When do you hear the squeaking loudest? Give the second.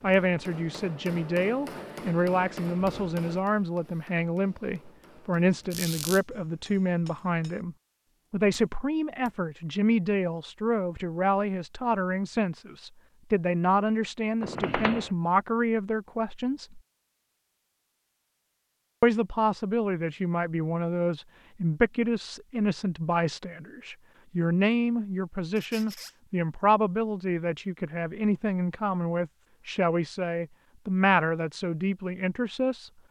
15 s.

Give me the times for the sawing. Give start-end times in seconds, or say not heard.
not heard.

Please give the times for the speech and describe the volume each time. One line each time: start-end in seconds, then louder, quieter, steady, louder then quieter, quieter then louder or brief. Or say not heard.
0.0-16.8 steady
19.0-32.9 steady.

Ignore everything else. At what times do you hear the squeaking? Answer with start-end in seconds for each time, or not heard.
5.7-6.2, 14.4-15.1, 25.6-26.1.